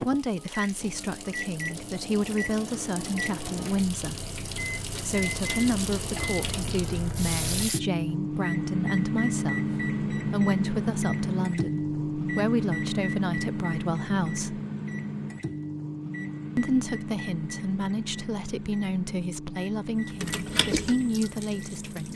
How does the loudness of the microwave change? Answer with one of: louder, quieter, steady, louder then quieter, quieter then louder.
louder then quieter.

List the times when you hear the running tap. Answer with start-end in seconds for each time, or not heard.
0.0-7.8, 19.9-22.1.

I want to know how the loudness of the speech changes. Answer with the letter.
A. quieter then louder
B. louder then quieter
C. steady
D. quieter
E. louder
C.